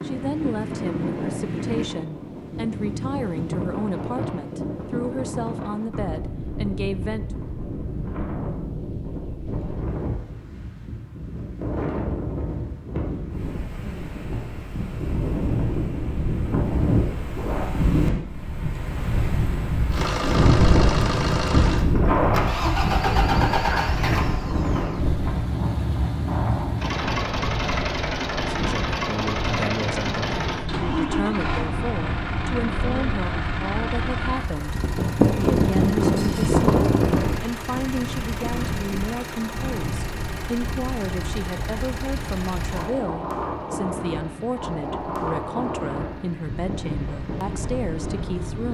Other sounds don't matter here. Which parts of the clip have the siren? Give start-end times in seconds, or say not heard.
not heard.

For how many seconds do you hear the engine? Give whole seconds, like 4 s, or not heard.
29 s.